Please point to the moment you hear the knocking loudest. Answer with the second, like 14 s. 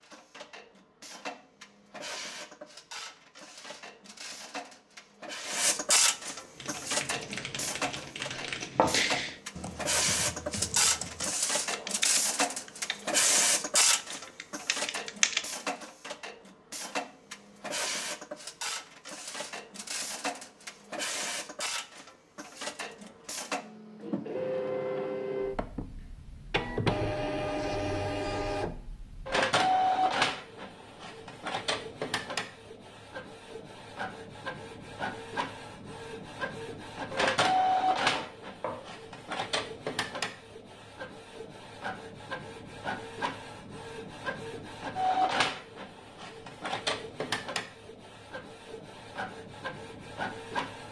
9 s.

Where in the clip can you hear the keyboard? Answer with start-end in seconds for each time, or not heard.
6.5-15.4.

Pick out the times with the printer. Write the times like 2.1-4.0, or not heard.
0.0-50.8.